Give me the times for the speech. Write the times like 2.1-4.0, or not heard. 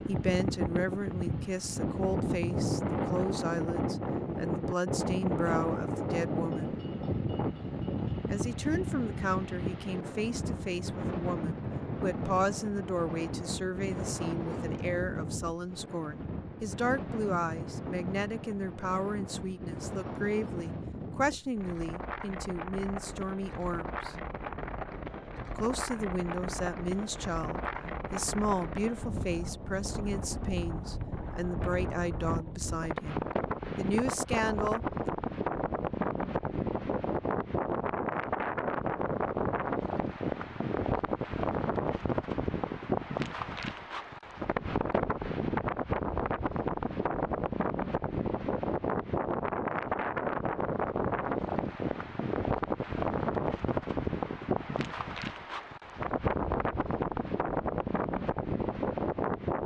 0.1-6.8, 8.2-24.1, 25.6-35.1.